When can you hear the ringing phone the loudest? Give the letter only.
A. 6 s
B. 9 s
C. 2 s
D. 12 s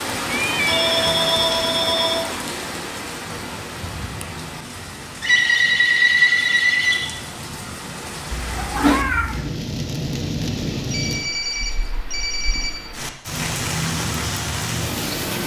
A.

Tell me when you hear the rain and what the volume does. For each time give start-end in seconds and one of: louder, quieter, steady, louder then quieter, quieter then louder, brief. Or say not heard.
0.0-15.4 quieter then louder.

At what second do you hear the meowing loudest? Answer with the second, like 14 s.
9 s.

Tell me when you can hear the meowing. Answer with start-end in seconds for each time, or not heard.
0.2-1.1, 8.3-9.6.